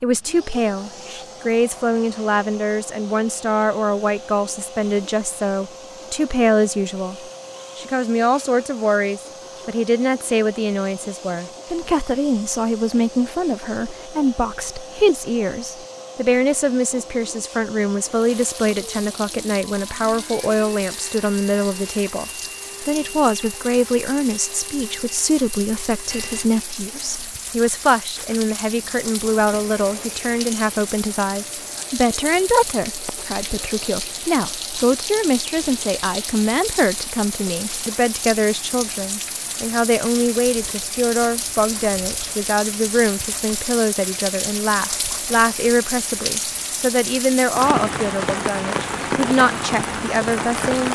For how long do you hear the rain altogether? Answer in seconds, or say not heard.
33 s.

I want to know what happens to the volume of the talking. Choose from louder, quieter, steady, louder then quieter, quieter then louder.
steady.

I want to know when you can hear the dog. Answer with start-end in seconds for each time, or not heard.
not heard.